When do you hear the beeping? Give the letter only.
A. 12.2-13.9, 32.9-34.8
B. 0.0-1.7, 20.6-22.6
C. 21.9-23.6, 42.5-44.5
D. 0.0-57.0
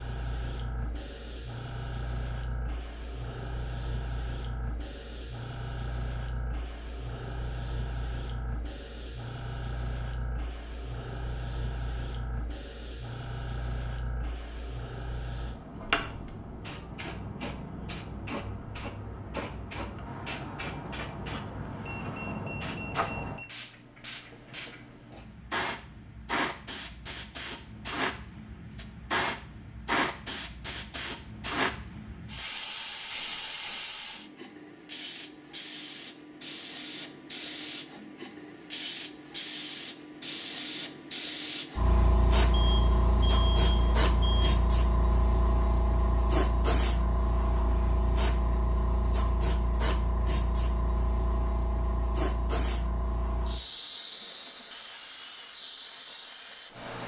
C.